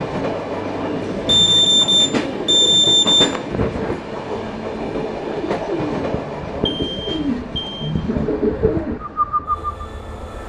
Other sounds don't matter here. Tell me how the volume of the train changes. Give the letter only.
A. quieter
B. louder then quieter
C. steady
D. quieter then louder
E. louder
A.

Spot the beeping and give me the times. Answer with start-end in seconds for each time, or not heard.
1.2-3.4, 6.7-8.0.